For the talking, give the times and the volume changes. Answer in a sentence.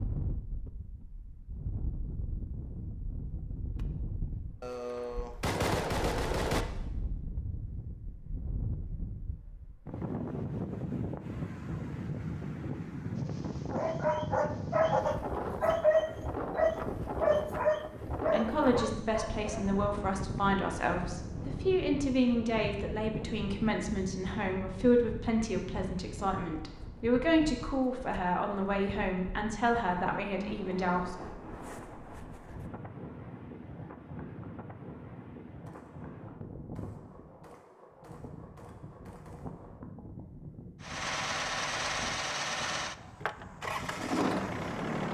The talking can be heard from 18.3 to 31.4 s, at a steady volume.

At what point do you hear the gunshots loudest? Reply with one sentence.
The volume of the gunshots peaks at 6 seconds.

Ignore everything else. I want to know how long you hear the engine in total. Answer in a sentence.
You can hear the engine for 4 seconds altogether.